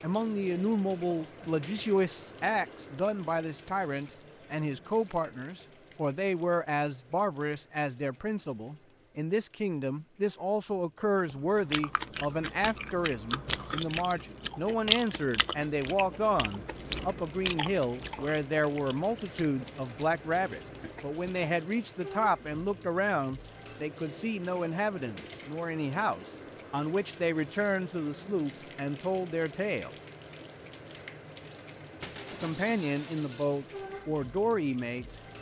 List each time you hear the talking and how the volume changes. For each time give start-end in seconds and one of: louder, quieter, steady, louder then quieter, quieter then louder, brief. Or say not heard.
0.0-29.9 steady
32.2-35.1 brief.